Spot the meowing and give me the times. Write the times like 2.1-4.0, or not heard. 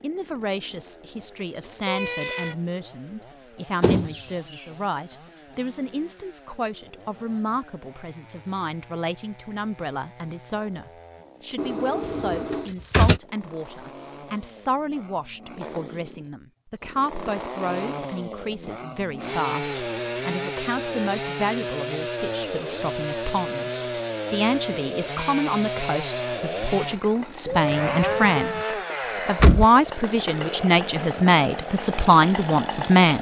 1.9-2.5, 11.6-12.7, 27.4-28.6.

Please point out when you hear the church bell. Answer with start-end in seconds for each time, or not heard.
not heard.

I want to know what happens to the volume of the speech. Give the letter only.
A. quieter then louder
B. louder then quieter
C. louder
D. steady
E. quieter
C.